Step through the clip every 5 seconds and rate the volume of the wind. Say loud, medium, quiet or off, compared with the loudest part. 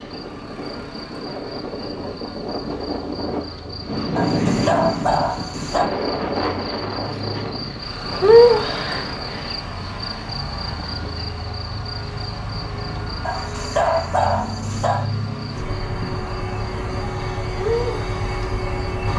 loud, loud, quiet, off.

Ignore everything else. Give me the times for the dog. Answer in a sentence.
You can hear the dog from 4.2 to 5.8 s and from 13.2 to 15.1 s.